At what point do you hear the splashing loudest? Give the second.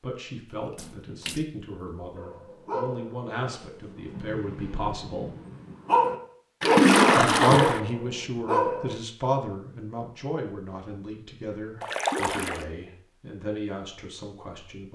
7 s.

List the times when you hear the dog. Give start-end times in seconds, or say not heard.
2.1-8.9.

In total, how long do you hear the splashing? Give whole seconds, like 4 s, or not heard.
3 s.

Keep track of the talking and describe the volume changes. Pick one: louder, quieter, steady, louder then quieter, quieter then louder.
louder then quieter.